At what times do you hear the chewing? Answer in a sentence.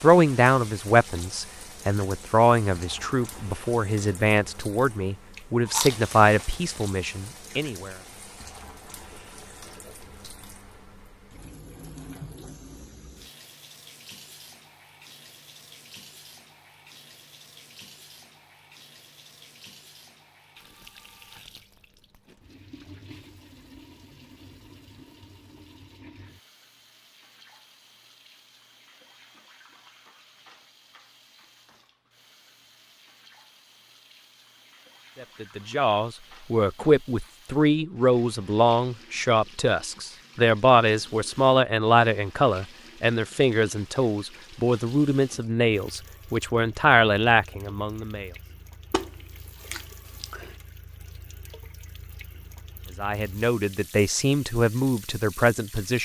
You can hear the chewing from 4.9 to 6.5 s and from 48.9 to 50.5 s.